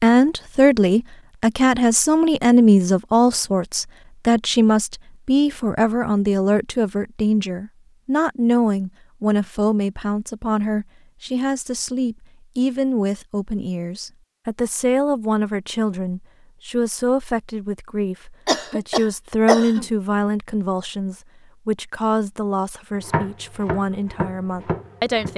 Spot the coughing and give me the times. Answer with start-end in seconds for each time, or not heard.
18.4-19.9.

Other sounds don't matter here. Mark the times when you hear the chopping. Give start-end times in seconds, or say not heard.
22.9-25.3.